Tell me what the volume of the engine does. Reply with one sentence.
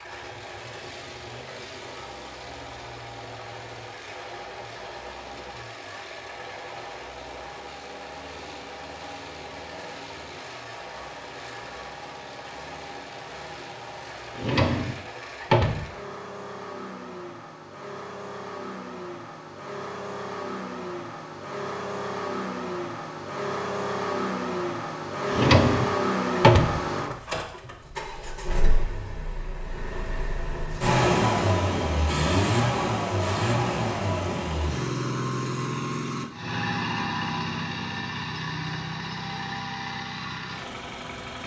The loudness of the engine goes up.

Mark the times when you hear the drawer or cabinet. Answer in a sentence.
You can hear the drawer or cabinet from 14.3 to 15.8 s and from 25.2 to 26.8 s.